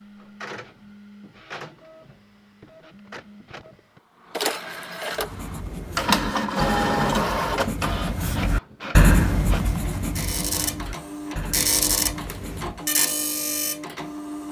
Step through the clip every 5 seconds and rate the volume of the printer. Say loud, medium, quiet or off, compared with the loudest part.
medium, loud, loud.